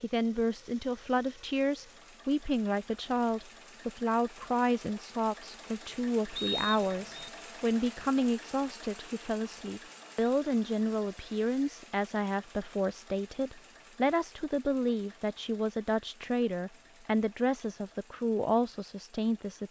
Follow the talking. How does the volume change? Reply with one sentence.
The loudness of the talking stays about the same.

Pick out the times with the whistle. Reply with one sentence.
You can hear the whistle from 6.3 to 7.3 s.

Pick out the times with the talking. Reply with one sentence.
The talking can be heard from 0.0 to 19.6 s.